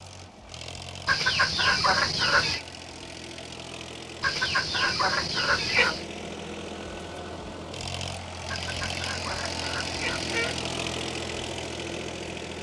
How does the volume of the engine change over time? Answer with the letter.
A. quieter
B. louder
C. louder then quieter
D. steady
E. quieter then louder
B.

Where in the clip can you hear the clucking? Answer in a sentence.
The clucking can be heard from 1.1 to 2.6 s, from 4.2 to 6.0 s and from 8.4 to 10.7 s.